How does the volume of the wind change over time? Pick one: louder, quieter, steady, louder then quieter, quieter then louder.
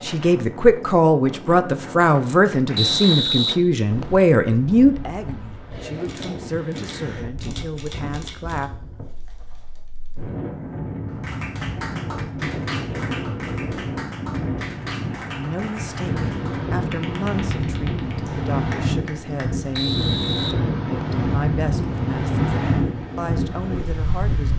louder.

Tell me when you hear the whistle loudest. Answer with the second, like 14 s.
3 s.